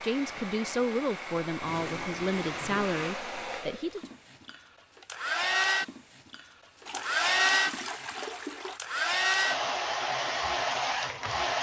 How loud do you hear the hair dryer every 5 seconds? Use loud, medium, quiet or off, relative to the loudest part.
medium, loud, loud.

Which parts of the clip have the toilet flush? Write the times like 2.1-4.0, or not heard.
1.6-3.0, 6.8-8.8.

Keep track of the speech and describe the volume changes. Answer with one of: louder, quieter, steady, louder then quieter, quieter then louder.
quieter.